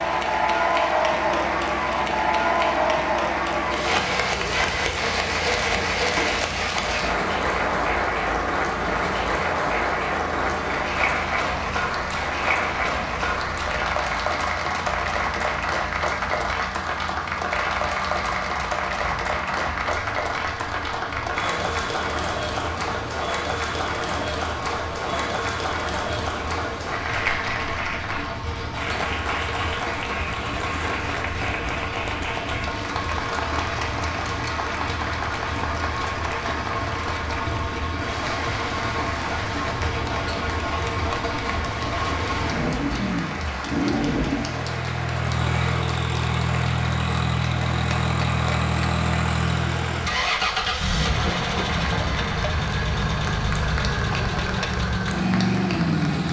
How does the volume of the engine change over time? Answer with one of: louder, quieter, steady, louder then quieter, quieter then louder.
louder.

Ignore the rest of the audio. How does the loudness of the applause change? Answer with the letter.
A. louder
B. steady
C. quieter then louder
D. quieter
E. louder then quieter
D.